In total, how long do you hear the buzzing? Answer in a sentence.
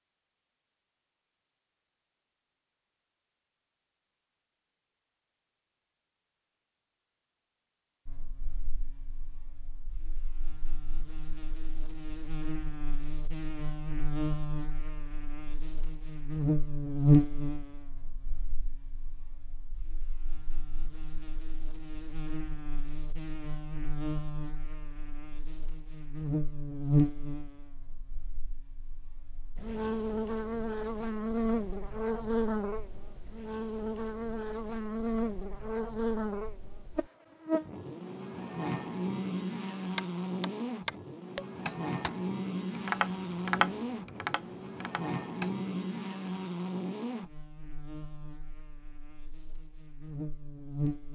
You can hear the buzzing for 43 seconds altogether.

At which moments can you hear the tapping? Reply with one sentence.
You can hear the tapping from 40.0 to 45.5 s.